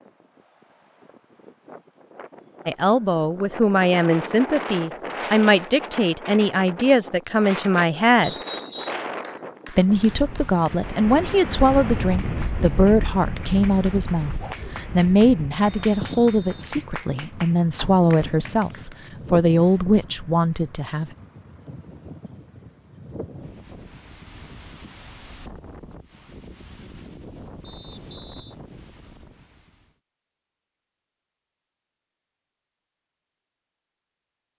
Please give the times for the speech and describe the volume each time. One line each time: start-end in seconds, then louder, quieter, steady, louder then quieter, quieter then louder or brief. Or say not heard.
2.6-8.3 steady
9.7-21.1 steady.